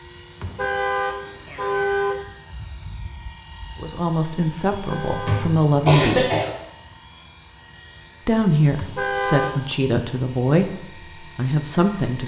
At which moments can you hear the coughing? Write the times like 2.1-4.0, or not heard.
5.1-6.5.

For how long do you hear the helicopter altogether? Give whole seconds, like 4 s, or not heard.
12 s.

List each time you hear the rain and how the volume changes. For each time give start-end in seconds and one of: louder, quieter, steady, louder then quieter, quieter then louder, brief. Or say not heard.
not heard.